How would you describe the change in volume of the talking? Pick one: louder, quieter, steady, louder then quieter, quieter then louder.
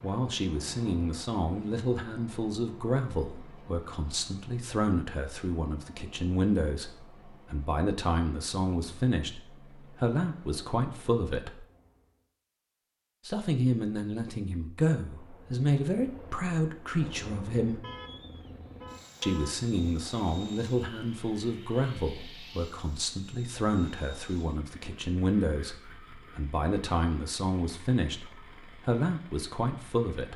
steady.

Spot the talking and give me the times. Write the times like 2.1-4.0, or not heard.
0.0-11.7, 13.2-17.8, 19.2-30.3.